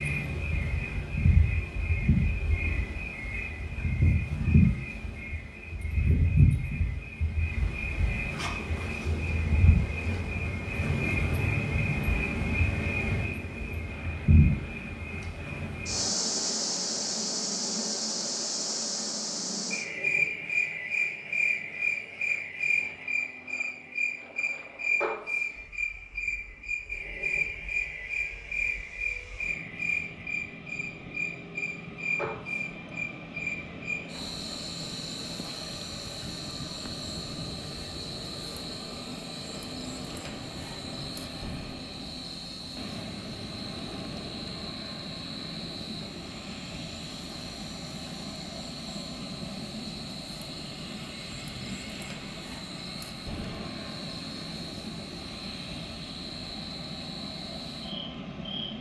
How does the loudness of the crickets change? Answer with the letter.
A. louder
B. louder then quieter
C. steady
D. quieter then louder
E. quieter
E.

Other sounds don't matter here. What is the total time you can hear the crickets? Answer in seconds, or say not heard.
59 s.